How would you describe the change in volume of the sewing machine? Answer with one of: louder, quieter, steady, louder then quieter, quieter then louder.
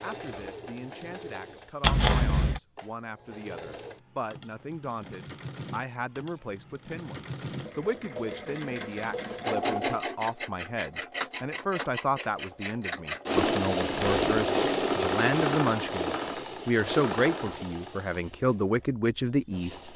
louder then quieter.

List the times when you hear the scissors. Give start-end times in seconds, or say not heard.
1.8-2.6, 13.9-14.4.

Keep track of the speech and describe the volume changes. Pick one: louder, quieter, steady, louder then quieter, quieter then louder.
louder.